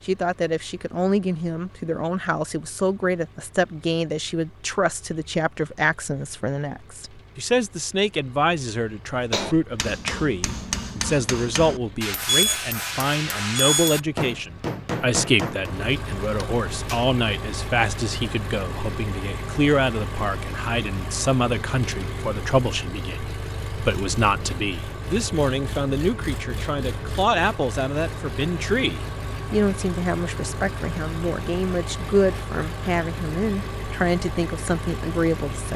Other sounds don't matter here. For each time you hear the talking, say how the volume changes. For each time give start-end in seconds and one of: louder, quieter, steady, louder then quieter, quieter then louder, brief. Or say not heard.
0.1-35.7 steady.